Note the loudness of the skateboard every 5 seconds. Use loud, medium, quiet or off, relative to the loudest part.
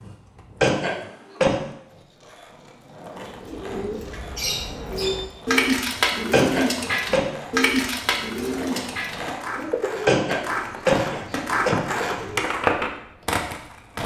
quiet, medium, loud.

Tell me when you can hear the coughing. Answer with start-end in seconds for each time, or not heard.
0.6-1.6, 6.3-7.3, 10.1-12.0.